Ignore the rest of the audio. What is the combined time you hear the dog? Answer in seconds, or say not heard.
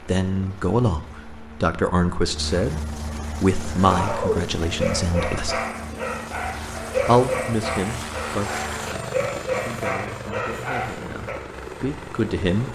8 s.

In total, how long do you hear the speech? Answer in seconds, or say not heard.
11 s.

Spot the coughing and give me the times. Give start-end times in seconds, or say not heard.
not heard.